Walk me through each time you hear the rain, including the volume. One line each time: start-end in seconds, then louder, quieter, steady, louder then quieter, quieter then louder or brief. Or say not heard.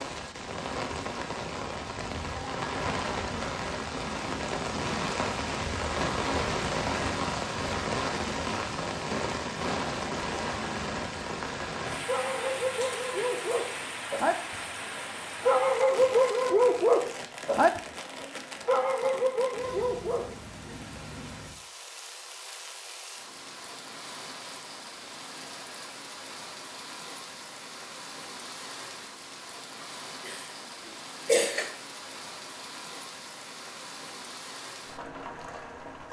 0.0-36.0 quieter.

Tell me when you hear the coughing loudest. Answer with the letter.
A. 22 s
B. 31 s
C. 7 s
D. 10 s
B.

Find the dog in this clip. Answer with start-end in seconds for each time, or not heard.
12.1-20.4.